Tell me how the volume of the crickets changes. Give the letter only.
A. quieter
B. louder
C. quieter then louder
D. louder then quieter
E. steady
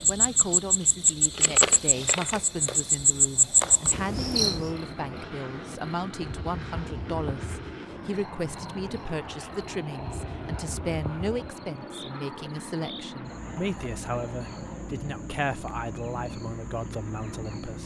A.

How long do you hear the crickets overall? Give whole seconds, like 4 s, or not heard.
18 s.